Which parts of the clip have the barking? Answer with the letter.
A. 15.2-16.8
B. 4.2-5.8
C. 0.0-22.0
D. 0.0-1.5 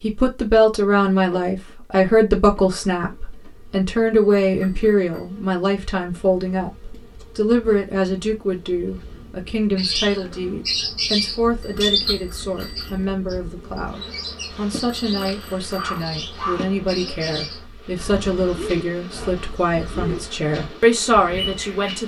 A.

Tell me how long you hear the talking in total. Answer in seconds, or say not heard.
22 s.